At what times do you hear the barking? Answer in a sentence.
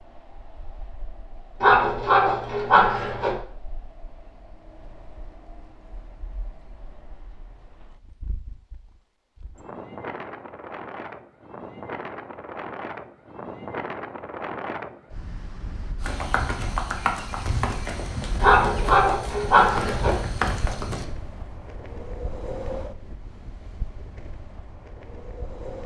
The barking can be heard from 1.6 to 3.4 s and from 18.4 to 20.1 s.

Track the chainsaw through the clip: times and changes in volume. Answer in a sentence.
You can't hear the chainsaw here.